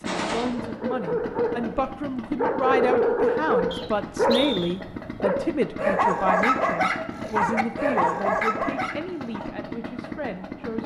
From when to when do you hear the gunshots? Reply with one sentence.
You can hear the gunshots from 0.1 to 0.5 s.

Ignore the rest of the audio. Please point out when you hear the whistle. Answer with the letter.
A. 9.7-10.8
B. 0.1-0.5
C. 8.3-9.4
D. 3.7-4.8
D.